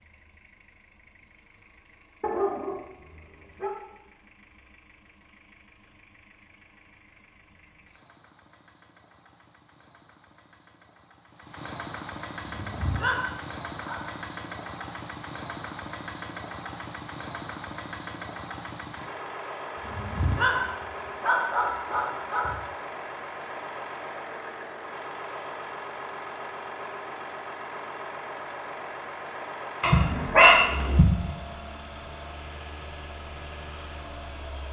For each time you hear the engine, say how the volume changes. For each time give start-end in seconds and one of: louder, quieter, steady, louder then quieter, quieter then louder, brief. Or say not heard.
0.0-34.6 louder.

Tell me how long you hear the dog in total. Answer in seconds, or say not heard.
7 s.